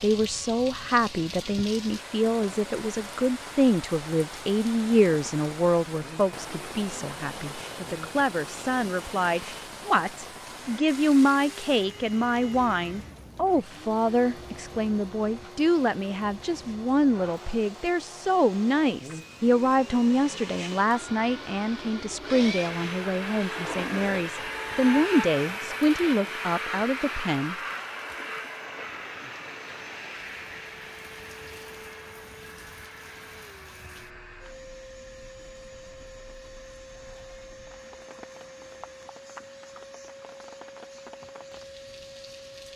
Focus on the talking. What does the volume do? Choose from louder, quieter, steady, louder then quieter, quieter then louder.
steady.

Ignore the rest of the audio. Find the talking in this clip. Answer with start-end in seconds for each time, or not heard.
0.0-27.6.